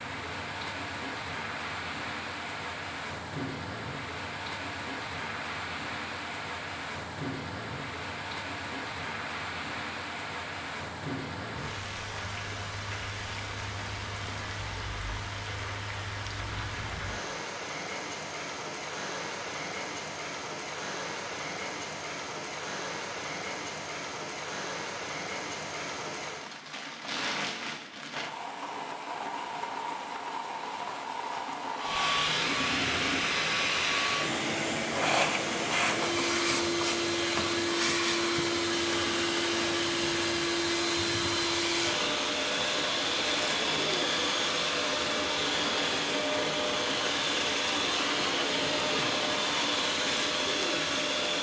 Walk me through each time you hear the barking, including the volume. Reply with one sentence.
You can't hear the barking here.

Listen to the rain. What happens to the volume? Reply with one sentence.
The volume of the rain stays about the same.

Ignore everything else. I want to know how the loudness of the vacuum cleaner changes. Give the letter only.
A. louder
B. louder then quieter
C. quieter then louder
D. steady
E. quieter
D.